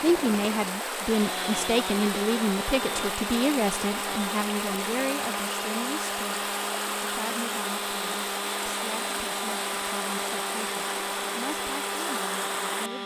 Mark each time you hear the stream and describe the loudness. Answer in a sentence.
You can hear the stream from 0.0 to 12.9 s, at a steady volume.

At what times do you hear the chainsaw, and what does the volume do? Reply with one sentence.
The chainsaw can be heard from 0.0 to 13.0 s, at a steady volume.